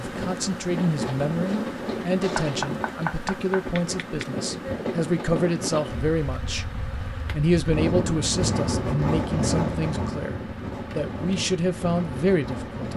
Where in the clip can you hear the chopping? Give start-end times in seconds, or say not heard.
2.4-4.2.